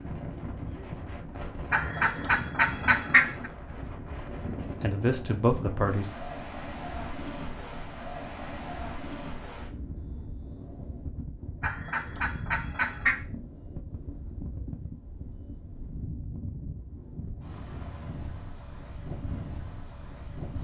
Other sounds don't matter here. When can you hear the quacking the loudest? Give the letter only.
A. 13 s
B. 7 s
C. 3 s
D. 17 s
C.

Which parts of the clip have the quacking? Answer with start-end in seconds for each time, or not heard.
1.7-3.5, 11.6-13.2.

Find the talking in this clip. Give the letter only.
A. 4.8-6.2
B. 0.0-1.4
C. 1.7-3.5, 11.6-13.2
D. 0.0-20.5
A.